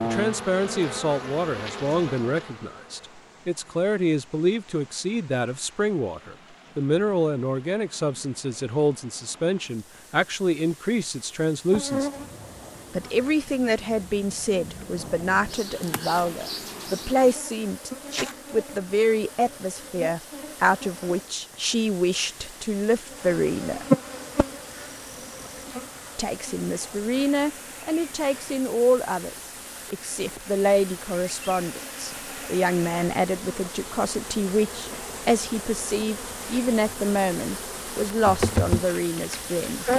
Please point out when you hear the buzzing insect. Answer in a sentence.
The buzzing insect can be heard from 0.0 to 3.3 s, from 11.7 to 21.3 s and from 23.1 to 39.9 s.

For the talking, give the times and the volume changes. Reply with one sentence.
The talking can be heard from 0.0 to 12.1 s, at a steady volume; from 12.9 to 23.9 s, at a steady volume; and from 26.1 to 39.9 s, at a steady volume.